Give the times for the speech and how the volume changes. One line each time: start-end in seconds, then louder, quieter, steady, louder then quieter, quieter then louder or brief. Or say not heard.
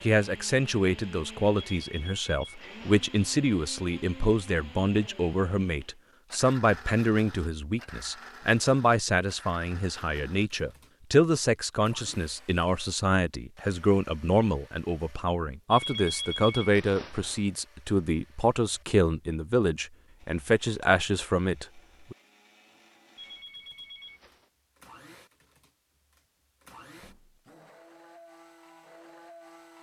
0.0-22.1 steady.